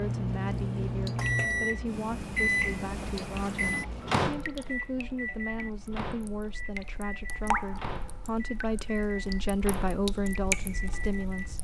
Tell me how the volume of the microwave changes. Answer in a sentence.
The loudness of the microwave goes down.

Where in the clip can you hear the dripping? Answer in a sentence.
The dripping can be heard from 0.0 to 11.5 s.